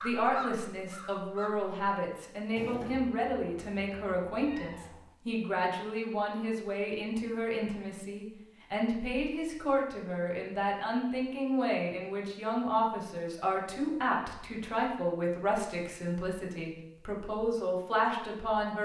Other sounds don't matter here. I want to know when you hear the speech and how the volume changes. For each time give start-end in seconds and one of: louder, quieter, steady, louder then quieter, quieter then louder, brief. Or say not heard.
0.0-18.8 steady.